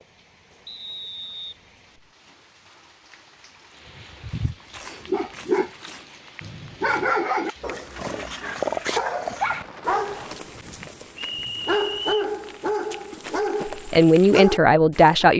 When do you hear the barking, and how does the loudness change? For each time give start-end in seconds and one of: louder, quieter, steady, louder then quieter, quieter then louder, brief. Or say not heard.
4.0-15.2 steady.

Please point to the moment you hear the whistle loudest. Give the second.
12 s.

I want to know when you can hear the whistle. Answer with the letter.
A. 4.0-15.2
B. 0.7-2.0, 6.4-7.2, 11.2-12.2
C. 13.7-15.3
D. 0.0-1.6
B.